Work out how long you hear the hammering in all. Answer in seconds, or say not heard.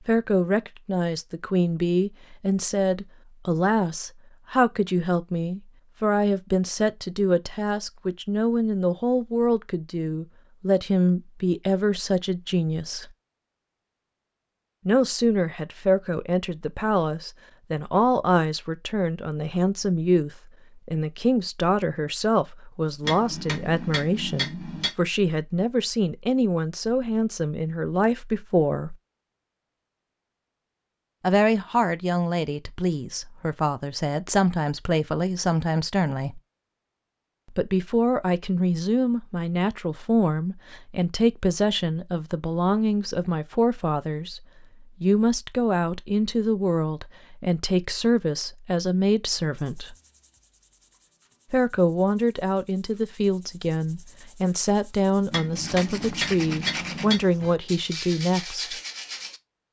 4 s.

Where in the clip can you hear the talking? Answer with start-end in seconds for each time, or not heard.
0.1-13.1, 14.8-28.9, 31.2-36.4, 37.5-44.4, 45.0-50.0, 51.5-58.8.